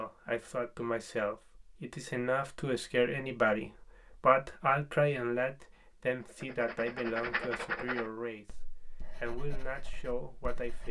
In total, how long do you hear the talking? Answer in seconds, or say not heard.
11 s.